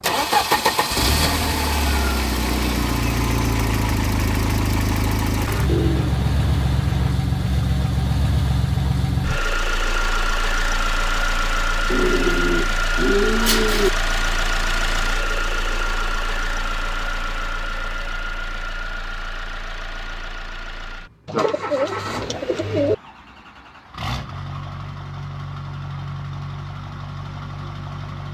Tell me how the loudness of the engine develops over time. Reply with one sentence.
The loudness of the engine goes down.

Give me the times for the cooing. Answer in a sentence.
You can hear the cooing from 5.7 to 7.2 s, from 11.9 to 13.9 s and from 21.2 to 22.9 s.